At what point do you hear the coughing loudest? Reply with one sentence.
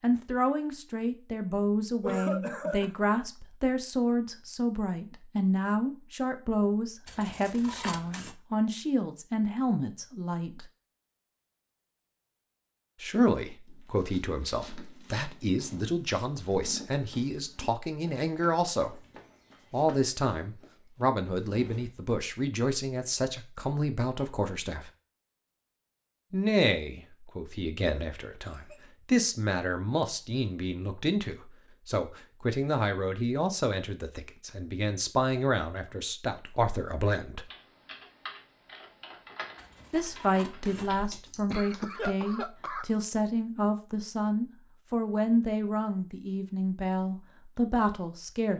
The loudest moment of the coughing is at 2 seconds.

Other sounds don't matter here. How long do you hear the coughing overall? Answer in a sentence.
You can hear the coughing for 4 seconds altogether.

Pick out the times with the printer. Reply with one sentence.
The printer can't be heard in this clip.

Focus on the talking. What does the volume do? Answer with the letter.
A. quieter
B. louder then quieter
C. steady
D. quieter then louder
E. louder
C.